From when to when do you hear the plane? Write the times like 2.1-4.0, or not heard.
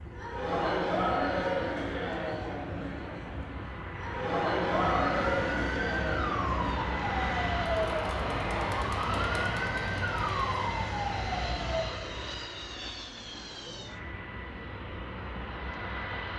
0.0-16.3.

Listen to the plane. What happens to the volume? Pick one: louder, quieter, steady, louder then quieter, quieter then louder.
louder then quieter.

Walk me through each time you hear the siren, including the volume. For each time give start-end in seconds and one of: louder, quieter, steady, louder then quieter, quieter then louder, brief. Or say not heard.
4.7-12.0 steady.